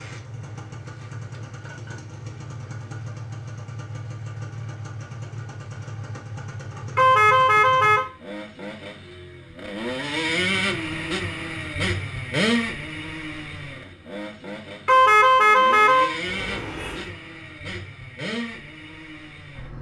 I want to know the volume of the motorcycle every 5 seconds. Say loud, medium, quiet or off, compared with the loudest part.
medium, medium, loud, medium.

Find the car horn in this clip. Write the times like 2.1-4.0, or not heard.
7.0-8.1, 14.8-17.1.